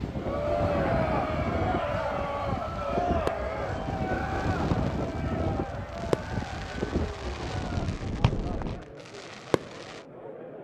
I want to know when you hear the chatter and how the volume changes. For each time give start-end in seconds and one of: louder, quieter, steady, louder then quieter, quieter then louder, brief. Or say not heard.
0.1-10.5 quieter.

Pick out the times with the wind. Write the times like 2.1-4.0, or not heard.
0.0-8.8.